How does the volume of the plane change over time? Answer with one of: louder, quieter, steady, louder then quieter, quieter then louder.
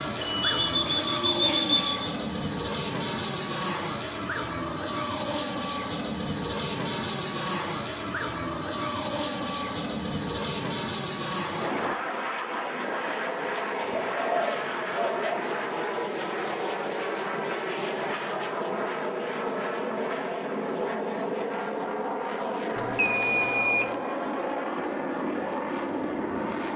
steady.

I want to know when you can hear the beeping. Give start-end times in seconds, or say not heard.
0.1-0.7, 22.8-23.9.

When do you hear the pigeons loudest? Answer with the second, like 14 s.
2 s.